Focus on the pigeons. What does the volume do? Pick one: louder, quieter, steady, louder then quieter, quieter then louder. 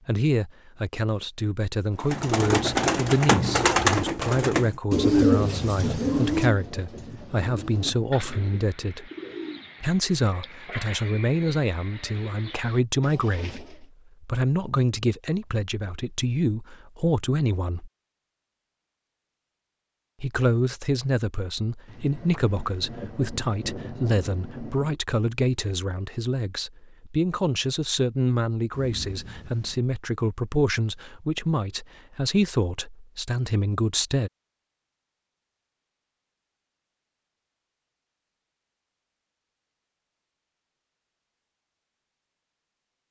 quieter.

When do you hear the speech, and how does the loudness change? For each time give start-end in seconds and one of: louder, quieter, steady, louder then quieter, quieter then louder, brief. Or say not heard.
0.1-9.1 steady
9.8-17.9 steady
20.2-34.3 steady.